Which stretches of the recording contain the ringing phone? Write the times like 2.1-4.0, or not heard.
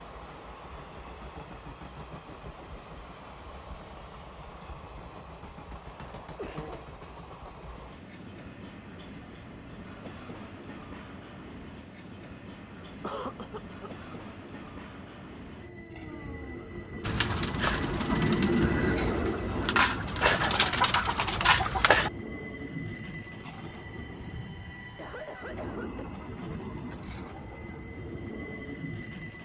not heard.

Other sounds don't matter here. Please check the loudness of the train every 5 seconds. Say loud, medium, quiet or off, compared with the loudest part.
quiet, quiet, quiet, loud, medium, medium.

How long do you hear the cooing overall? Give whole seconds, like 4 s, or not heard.
5 s.